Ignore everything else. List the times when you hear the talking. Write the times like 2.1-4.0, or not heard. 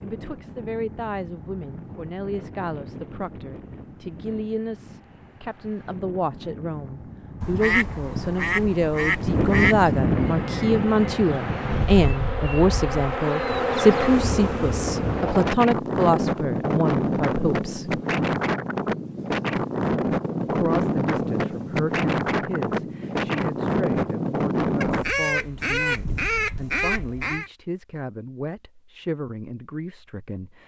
0.0-18.0, 20.5-30.6.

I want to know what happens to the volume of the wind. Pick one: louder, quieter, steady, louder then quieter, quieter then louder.
louder.